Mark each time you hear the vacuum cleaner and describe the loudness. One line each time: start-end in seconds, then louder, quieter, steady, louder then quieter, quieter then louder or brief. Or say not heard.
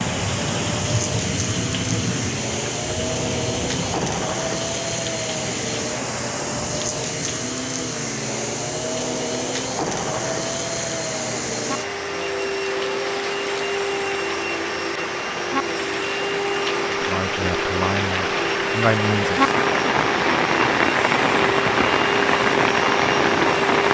0.0-23.8 steady.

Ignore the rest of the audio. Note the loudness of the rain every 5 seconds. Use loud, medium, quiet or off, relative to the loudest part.
medium, quiet, quiet, medium, loud.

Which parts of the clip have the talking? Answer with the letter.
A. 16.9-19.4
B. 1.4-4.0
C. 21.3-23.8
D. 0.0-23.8
A.